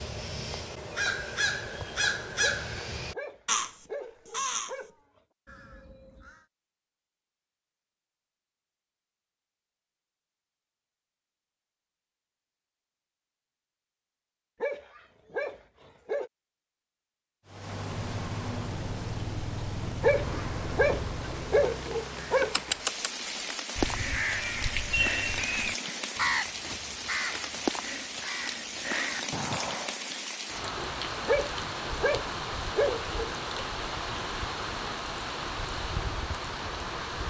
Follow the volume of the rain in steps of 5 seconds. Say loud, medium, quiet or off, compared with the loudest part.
off, off, off, loud, loud, loud, loud, loud.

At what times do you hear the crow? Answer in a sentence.
The crow can be heard from 0.0 to 4.8 s, from 5.5 to 6.5 s and from 22.4 to 29.9 s.